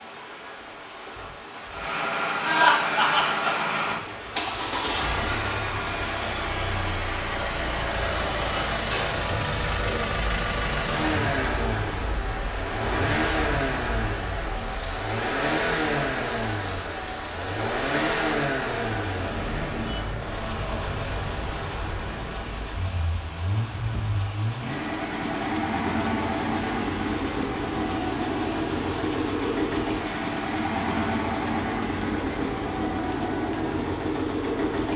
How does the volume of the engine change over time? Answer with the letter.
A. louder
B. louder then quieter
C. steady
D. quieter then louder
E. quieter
C.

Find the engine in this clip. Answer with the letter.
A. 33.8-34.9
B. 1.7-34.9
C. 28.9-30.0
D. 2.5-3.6
B.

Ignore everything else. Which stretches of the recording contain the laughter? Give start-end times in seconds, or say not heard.
2.5-3.6.